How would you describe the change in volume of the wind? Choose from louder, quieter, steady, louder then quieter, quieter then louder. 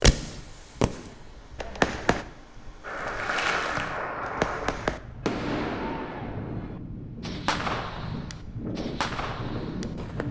louder.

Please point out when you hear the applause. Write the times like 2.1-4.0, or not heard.
2.8-4.7.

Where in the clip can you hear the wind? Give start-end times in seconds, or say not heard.
0.1-10.2.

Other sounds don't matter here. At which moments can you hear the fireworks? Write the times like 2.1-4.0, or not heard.
0.0-2.2, 4.2-10.2.